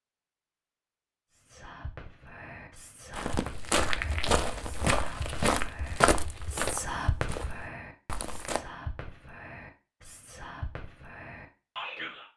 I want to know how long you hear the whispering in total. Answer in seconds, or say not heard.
11 s.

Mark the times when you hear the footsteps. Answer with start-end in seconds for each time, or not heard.
3.1-8.6.